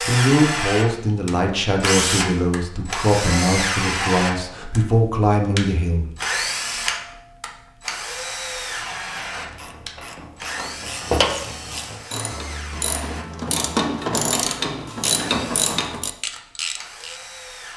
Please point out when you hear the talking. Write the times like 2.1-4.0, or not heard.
0.0-6.0.